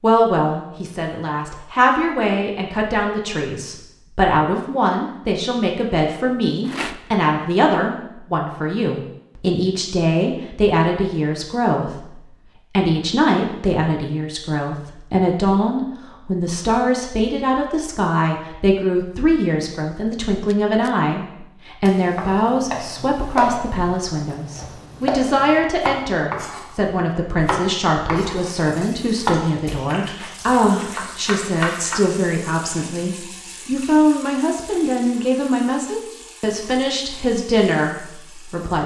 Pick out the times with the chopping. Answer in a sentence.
You can hear the chopping from 21.9 to 28.6 s and from 29.2 to 32.0 s.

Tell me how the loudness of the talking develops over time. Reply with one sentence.
The volume of the talking stays about the same.